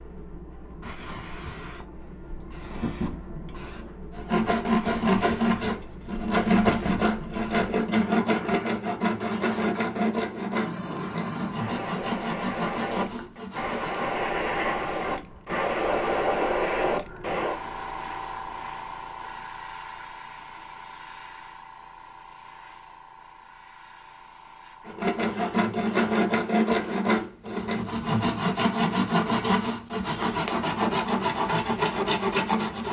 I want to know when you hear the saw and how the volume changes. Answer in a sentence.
The saw can be heard from 4.1 to 14.2 s, getting quieter; and from 24.9 to 32.8 s, at a steady volume.